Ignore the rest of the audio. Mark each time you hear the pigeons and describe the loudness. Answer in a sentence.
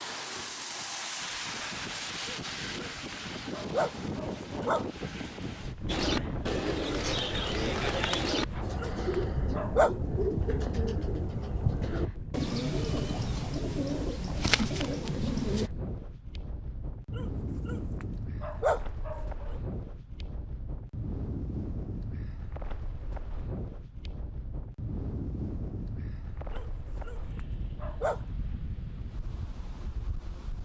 You can hear the pigeons from 5.8 to 15.7 s, at a steady volume.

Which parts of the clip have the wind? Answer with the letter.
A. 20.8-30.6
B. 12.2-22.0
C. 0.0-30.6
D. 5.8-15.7
C.